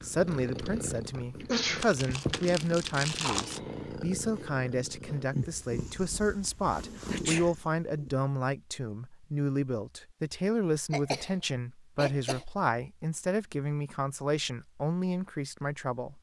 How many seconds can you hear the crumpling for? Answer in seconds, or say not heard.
2 s.